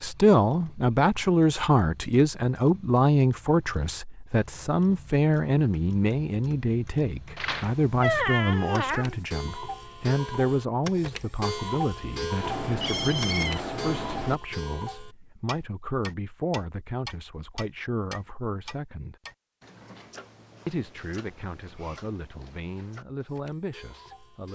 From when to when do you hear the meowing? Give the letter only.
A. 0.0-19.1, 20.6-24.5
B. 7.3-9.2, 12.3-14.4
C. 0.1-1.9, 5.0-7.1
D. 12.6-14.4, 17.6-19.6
B.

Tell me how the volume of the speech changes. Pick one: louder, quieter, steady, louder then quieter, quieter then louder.
quieter.